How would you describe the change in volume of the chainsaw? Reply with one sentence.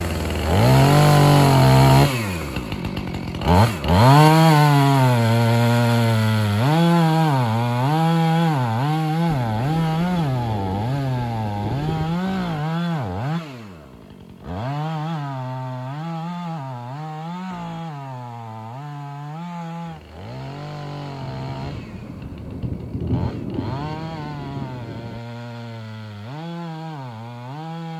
The volume of the chainsaw goes down.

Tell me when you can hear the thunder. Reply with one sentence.
The thunder can be heard from 9.2 to 12.2 s and from 21.2 to 25.2 s.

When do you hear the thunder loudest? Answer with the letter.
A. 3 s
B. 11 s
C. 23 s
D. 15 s
C.